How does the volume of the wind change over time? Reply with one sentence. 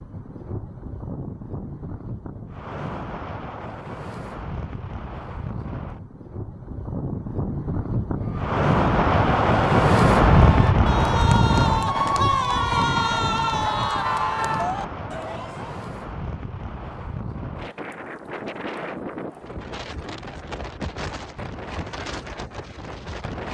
The volume of the wind goes up, then down.